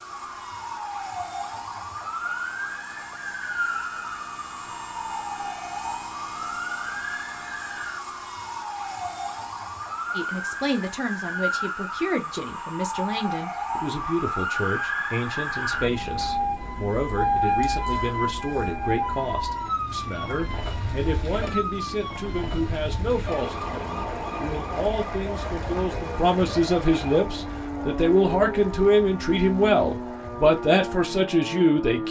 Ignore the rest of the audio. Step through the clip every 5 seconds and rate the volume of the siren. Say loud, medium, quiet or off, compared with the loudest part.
medium, medium, loud, loud, medium, medium, medium.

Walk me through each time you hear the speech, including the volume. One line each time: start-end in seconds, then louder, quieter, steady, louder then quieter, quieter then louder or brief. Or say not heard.
10.2-32.0 louder.